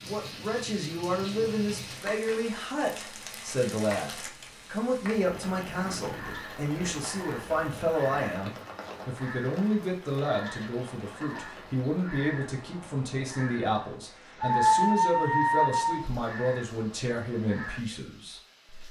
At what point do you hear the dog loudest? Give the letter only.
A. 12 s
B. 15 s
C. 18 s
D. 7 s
B.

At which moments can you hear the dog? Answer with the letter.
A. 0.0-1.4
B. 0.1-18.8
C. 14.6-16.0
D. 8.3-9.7
C.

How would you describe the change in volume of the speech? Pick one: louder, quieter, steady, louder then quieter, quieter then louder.
steady.